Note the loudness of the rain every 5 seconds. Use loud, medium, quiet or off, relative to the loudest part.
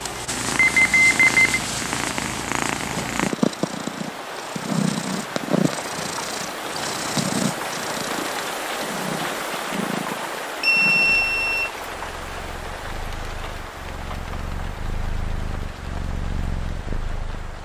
medium, loud, loud, medium.